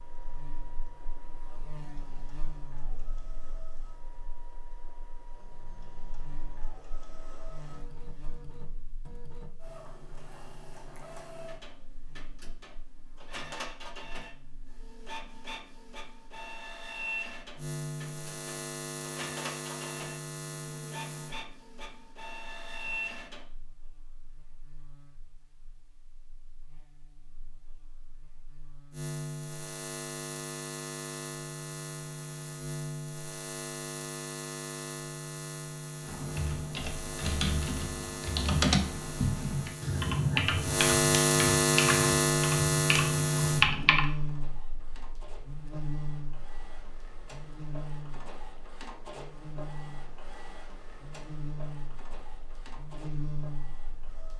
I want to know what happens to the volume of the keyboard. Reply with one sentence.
The volume of the keyboard goes up.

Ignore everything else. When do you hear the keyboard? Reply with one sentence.
You can hear the keyboard from 36.0 to 44.0 s.